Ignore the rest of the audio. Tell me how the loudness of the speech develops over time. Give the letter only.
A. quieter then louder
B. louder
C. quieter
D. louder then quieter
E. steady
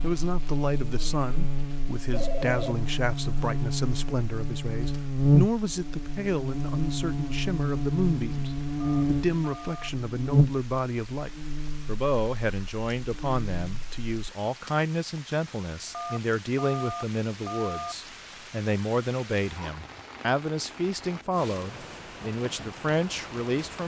E.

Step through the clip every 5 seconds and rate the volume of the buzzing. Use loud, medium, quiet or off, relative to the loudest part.
medium, loud, loud, off, off.